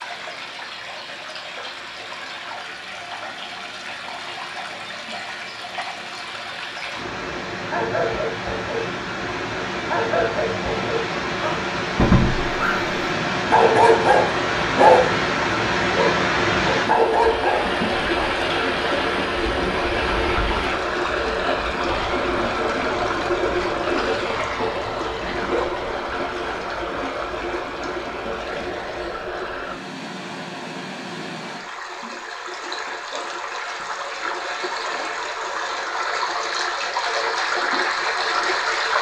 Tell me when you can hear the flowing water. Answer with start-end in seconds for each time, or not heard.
0.0-38.9.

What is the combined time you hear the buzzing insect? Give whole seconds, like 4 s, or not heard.
not heard.